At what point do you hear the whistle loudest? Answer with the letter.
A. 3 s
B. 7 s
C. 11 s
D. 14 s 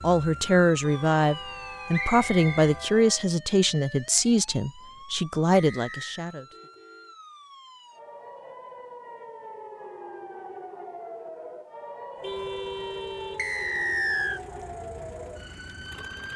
D.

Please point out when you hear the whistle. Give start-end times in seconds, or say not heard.
1.9-2.7, 5.5-6.2, 13.3-14.4.